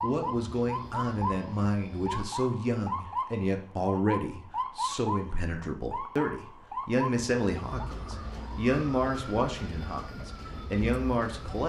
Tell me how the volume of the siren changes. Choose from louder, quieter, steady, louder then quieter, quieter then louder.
quieter.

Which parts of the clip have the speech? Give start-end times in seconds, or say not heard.
0.0-11.6.